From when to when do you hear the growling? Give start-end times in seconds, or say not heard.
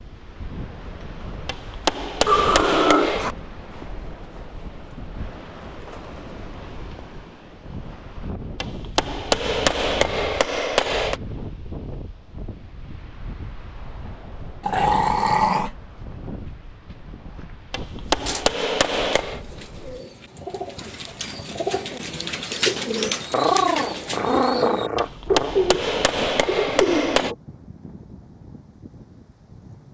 2.2-3.4, 14.6-15.7, 23.3-25.6.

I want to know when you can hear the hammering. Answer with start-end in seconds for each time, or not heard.
1.4-3.4, 8.6-11.2, 17.7-19.4, 24.9-27.4.